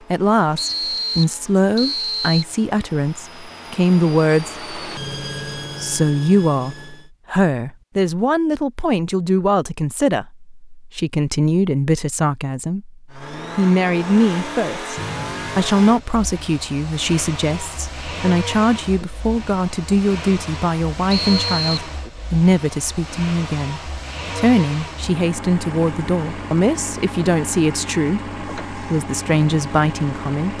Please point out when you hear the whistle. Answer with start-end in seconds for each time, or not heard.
0.6-2.5, 14.9-15.8, 21.1-21.9.